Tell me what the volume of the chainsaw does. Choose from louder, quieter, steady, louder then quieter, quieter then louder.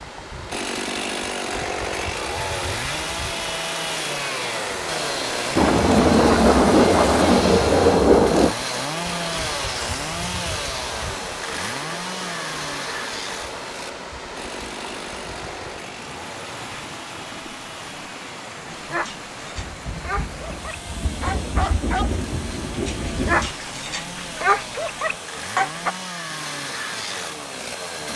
quieter then louder.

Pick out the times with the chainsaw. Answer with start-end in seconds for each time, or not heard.
0.0-28.1.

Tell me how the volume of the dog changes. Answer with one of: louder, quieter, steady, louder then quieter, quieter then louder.
louder.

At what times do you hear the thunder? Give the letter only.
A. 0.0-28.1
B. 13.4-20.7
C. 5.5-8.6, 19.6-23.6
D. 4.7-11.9
C.